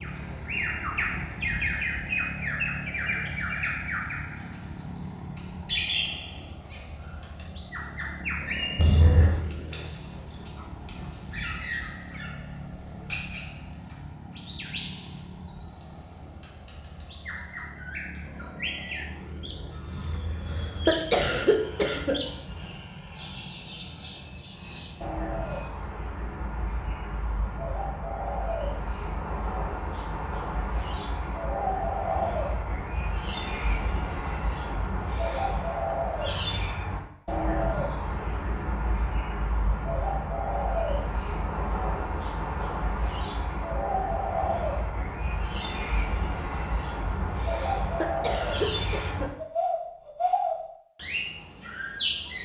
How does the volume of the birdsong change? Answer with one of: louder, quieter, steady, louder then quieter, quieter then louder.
quieter then louder.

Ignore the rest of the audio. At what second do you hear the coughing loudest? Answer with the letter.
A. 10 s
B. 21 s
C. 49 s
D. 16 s
B.